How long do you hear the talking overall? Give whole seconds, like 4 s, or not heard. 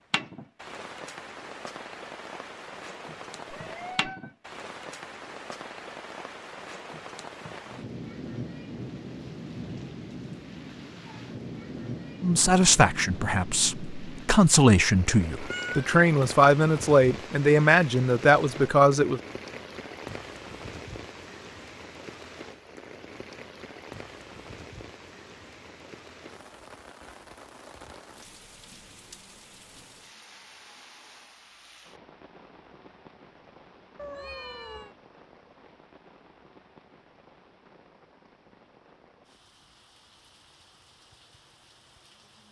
7 s.